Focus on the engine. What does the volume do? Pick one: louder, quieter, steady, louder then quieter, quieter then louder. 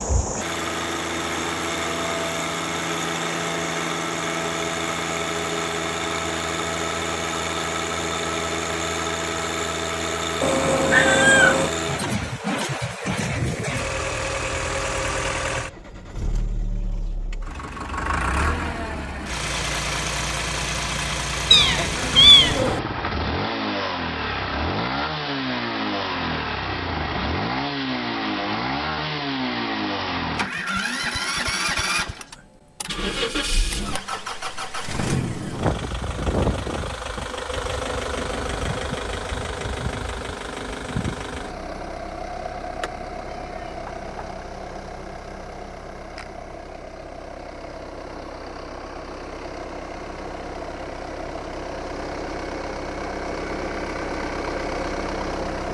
quieter.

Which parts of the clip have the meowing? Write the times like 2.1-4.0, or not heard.
10.4-11.7, 21.5-22.8, 42.7-44.3.